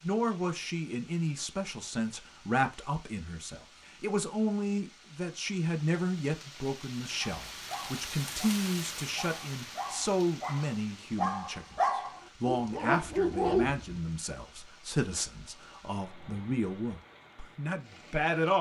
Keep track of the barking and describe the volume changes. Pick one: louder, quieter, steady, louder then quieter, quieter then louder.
louder.